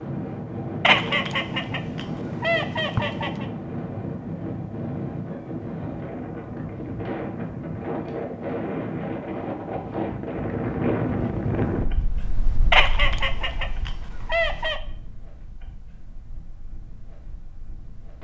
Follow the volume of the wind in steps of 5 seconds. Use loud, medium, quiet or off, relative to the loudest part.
loud, loud, loud, quiet.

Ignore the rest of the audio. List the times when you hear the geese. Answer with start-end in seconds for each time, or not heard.
0.8-3.5, 12.7-14.8.